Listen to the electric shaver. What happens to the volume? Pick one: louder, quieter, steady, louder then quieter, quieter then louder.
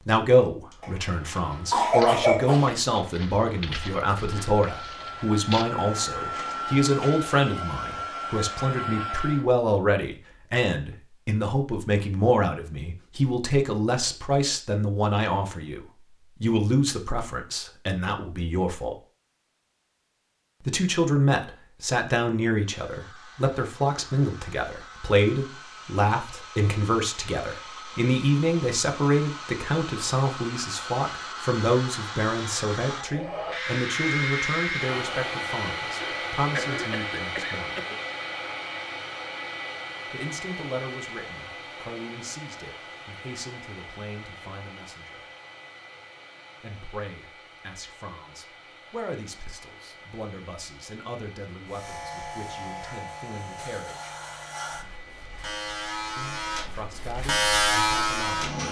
louder.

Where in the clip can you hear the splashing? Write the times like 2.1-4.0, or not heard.
not heard.